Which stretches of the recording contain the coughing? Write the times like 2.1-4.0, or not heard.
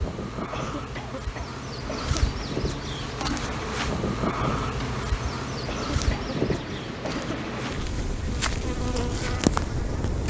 0.5-2.5, 5.7-7.4.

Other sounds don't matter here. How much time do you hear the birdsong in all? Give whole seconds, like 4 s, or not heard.
not heard.